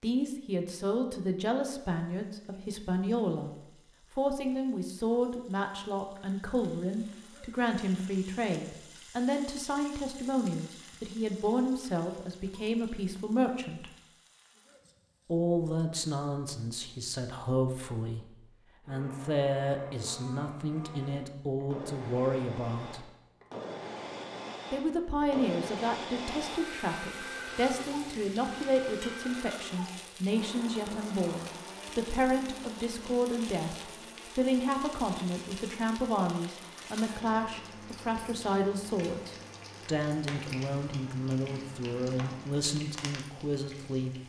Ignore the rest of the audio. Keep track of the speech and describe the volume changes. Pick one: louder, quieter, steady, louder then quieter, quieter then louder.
steady.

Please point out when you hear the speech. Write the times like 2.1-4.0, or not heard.
0.0-3.5, 4.1-13.9, 15.2-23.1, 24.7-44.1.